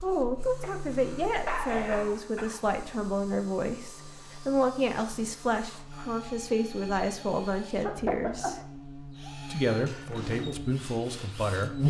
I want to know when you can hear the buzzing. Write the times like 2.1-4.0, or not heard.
0.0-11.8.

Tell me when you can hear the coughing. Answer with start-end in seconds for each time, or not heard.
0.6-2.6, 7.8-8.7.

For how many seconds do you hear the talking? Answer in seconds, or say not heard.
11 s.